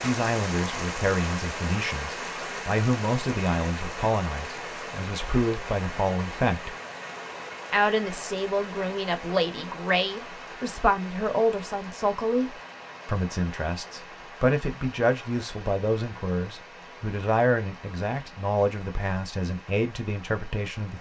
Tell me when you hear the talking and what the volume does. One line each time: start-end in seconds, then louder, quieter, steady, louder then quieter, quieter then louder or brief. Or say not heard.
0.0-6.8 steady
7.7-20.9 steady.